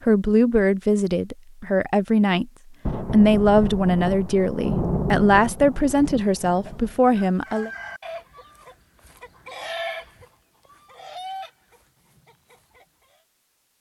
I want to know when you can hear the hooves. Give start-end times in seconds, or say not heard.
not heard.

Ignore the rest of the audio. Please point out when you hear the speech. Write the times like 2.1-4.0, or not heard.
0.1-2.5, 3.1-7.7.